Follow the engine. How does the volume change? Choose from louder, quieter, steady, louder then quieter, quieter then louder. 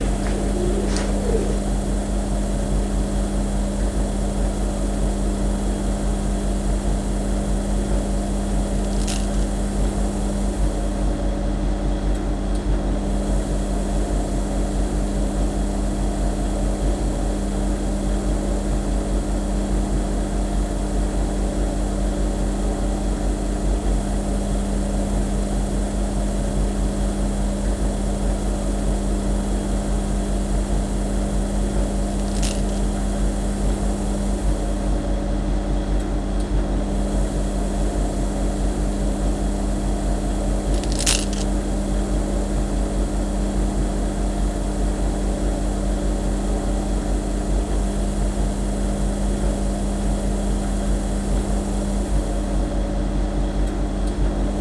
steady.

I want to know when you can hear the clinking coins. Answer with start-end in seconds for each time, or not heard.
8.8-9.4, 32.1-32.8, 40.7-41.5.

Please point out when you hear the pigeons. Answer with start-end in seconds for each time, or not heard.
0.0-1.6.